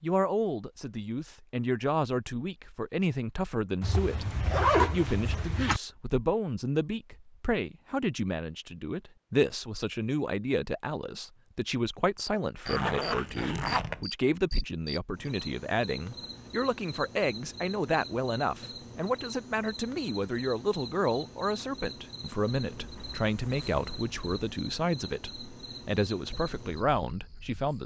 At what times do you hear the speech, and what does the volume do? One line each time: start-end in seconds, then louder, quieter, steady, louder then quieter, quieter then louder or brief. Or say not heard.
0.0-27.8 steady.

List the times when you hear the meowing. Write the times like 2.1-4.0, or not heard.
not heard.